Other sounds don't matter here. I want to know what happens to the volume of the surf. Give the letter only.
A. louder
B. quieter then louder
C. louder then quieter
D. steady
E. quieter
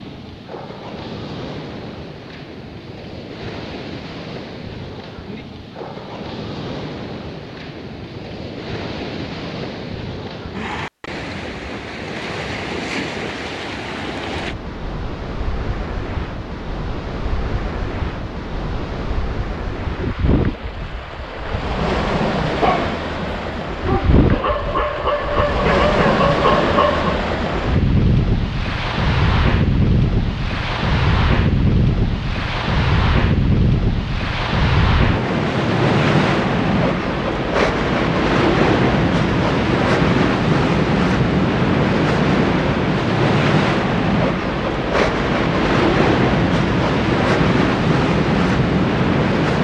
A.